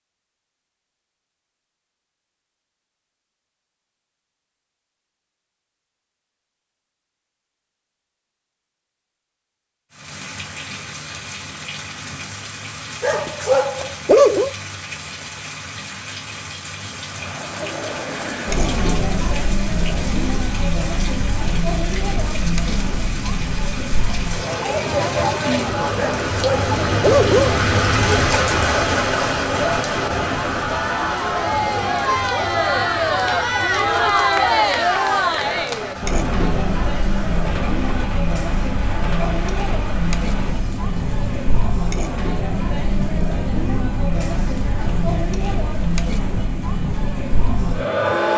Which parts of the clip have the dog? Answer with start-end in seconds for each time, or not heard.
13.0-14.5, 25.9-27.6.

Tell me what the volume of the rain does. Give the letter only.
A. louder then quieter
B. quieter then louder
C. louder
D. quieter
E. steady
A.